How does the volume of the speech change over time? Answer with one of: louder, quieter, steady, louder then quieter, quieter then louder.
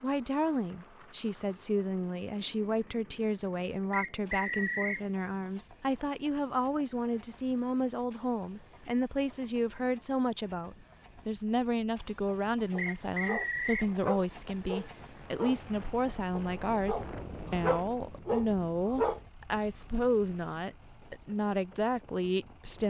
steady.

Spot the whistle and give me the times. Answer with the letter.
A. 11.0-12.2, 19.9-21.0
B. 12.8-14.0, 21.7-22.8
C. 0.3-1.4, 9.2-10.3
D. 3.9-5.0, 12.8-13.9
D.